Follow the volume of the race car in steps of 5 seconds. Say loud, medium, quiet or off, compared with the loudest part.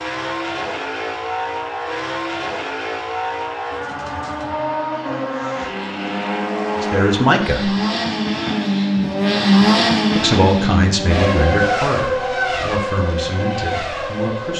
medium, loud, loud.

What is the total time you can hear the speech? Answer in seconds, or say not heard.
5 s.